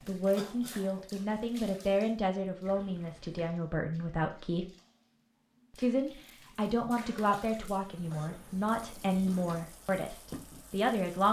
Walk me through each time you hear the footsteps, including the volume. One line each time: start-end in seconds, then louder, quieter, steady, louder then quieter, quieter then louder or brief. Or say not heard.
not heard.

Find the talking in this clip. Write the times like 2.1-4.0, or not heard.
0.1-4.7, 5.8-11.2.